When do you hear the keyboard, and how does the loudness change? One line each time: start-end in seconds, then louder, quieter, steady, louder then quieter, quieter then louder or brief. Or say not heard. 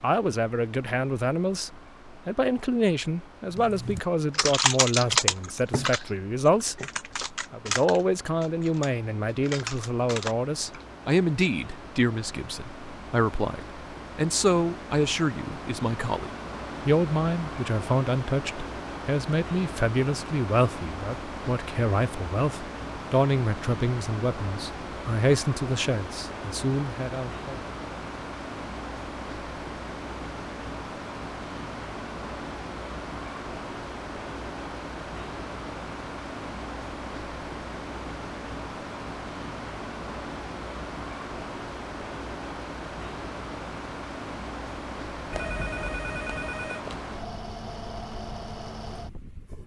3.5-10.8 quieter then louder.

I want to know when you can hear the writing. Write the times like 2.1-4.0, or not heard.
not heard.